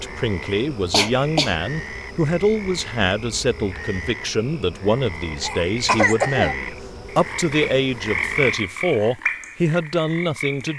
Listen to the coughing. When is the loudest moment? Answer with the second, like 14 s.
6 s.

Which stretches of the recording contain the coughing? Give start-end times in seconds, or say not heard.
0.9-1.6, 5.4-6.5.